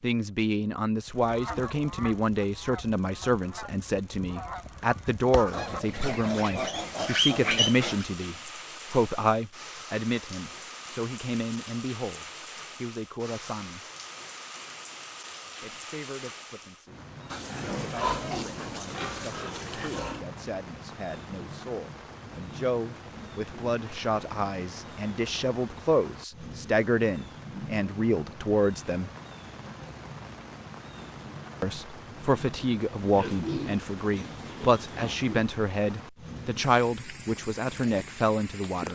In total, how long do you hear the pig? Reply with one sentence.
You can hear the pig for 8 seconds altogether.